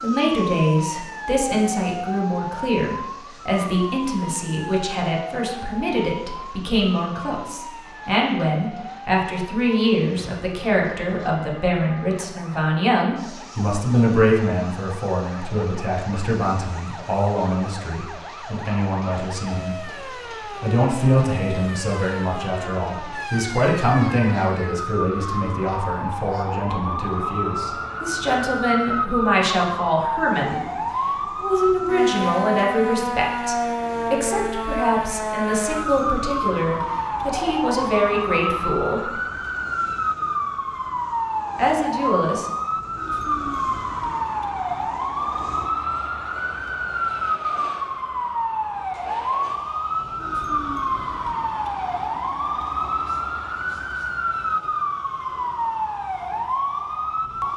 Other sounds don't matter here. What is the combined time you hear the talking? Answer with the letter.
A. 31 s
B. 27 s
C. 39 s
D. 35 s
C.